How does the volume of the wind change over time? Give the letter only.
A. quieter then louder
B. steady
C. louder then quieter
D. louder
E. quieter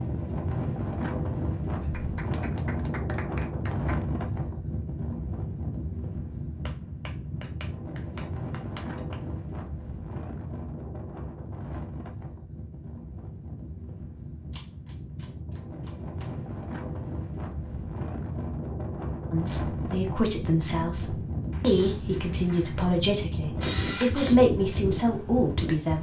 A.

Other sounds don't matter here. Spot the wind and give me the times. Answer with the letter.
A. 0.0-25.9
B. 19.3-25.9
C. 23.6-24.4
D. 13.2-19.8
A.